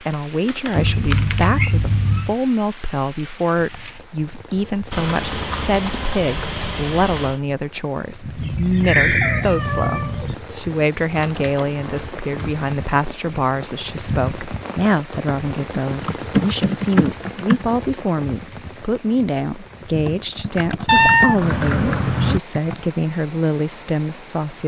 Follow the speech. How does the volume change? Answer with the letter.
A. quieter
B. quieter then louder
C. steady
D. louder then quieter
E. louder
C.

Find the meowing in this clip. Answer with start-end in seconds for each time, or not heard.
0.8-2.4, 8.3-10.3, 20.9-22.4.